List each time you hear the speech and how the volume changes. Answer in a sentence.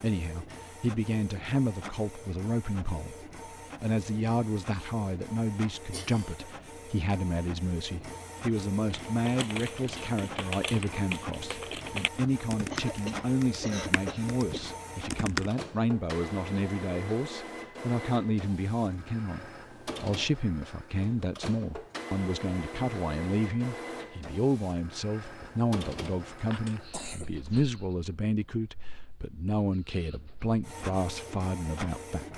You can hear the speech from 0.0 to 32.3 s, at a steady volume.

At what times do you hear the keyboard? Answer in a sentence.
You can hear the keyboard from 8.9 to 15.5 s.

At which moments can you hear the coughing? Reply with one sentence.
The coughing can be heard from 5.9 to 6.5 s, from 12.7 to 14.7 s and from 26.5 to 27.6 s.